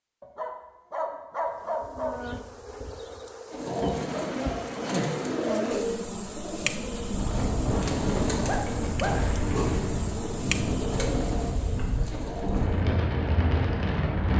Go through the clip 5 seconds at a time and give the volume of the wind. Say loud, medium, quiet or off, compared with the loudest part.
off, loud, loud.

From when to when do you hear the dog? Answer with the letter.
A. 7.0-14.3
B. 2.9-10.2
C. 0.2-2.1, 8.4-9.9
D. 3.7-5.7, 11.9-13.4
C.